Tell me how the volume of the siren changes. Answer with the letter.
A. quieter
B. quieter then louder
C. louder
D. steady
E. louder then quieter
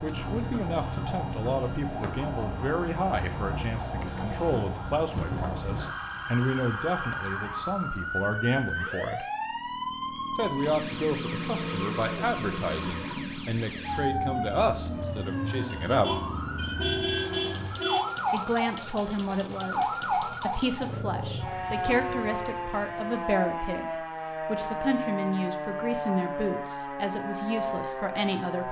D.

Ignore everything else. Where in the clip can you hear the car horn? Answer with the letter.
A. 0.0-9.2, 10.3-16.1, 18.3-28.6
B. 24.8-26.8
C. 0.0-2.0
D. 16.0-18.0
D.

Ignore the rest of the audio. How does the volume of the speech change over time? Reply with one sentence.
The loudness of the speech stays about the same.